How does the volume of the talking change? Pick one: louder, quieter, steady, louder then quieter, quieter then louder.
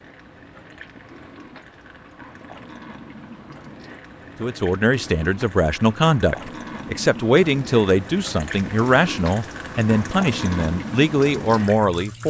steady.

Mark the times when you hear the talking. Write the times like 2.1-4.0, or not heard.
4.4-12.2.